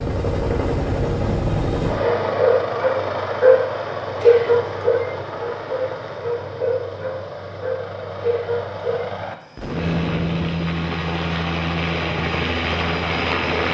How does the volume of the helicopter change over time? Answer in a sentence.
The loudness of the helicopter goes down, then up.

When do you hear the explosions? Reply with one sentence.
The explosions can be heard from 9.6 to 10.9 s.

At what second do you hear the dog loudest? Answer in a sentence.
The volume of the dog peaks at 4 seconds.